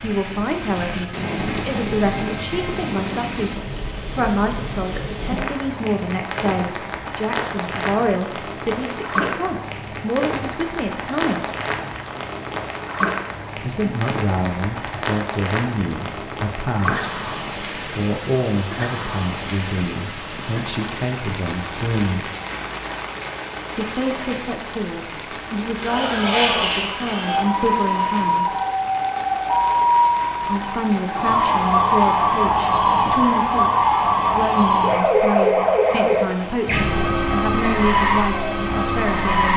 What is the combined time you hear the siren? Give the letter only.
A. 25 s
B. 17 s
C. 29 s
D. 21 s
B.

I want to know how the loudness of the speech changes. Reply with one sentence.
The volume of the speech stays about the same.